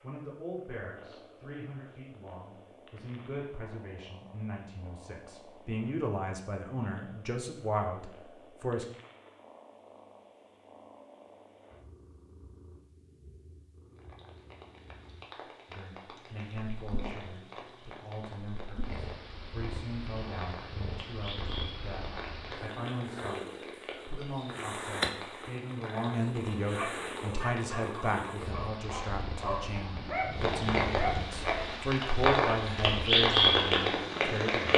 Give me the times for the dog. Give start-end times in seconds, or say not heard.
26.8-31.9.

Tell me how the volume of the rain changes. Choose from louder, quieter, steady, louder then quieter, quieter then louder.
louder.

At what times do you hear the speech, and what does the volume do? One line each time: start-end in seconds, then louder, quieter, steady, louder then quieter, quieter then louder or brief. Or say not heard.
0.0-8.8 louder
15.7-34.7 louder.